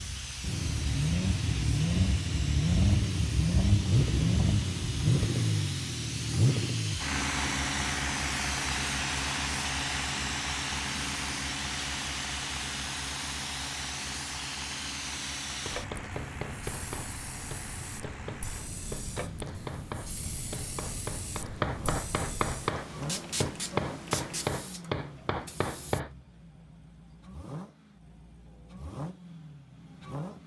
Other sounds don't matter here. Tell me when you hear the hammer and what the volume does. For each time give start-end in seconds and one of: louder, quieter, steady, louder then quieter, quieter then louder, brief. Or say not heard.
15.4-26.1 louder.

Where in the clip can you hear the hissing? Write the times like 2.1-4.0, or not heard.
0.0-26.0.